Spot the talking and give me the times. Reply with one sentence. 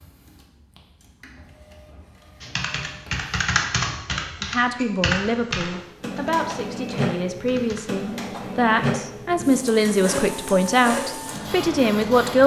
You can hear the talking from 4.4 to 12.4 s.